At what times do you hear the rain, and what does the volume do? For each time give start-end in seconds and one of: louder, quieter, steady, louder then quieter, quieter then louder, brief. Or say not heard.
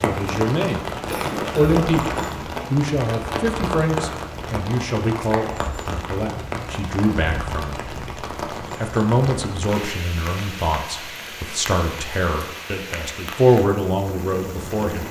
0.0-15.0 quieter.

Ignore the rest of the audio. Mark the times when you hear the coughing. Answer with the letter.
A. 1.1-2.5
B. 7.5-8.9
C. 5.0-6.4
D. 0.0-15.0
A.